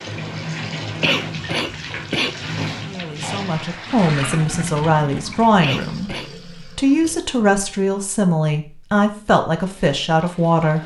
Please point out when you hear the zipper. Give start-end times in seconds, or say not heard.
not heard.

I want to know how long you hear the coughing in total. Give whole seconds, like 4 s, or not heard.
2 s.